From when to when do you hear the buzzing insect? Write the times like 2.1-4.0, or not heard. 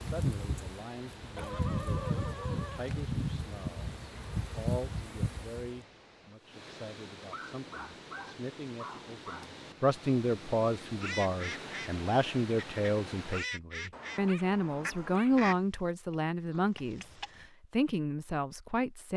0.0-5.8.